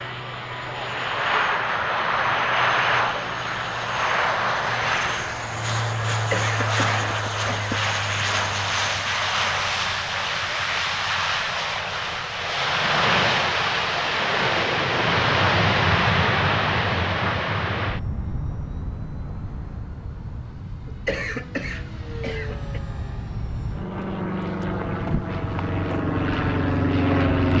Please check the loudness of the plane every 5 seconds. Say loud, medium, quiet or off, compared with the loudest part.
loud, loud, loud, loud, medium, loud.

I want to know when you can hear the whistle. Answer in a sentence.
The whistle can't be heard in this clip.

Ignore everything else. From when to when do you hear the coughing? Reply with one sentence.
You can hear the coughing from 6.1 to 7.8 s and from 20.9 to 22.8 s.